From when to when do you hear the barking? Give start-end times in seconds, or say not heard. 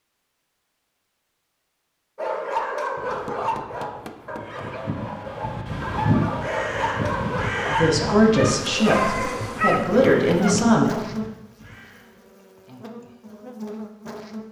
2.1-10.6.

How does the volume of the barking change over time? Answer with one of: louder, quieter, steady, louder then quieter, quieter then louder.
quieter then louder.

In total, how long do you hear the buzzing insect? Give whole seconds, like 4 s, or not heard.
6 s.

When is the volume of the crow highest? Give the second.
6 s.